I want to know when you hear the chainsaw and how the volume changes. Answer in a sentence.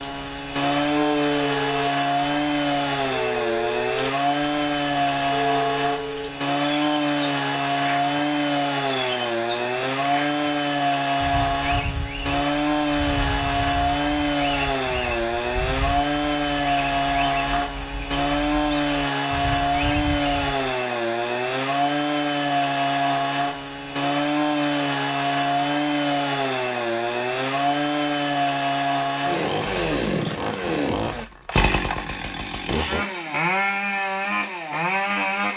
The chainsaw can be heard from 0.0 to 35.5 s, at a steady volume.